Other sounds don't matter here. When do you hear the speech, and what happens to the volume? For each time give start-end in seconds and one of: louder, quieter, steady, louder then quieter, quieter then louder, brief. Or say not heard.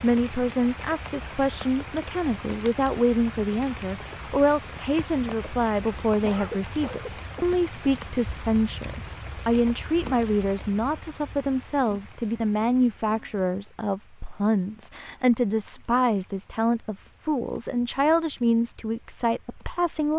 0.0-20.1 steady.